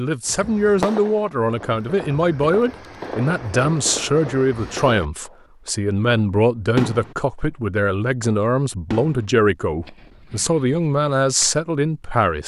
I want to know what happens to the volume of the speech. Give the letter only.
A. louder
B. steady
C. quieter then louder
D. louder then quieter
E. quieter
B.